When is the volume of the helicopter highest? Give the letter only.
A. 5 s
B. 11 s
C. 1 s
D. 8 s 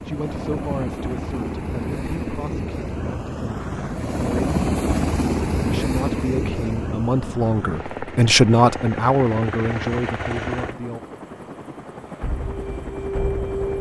A.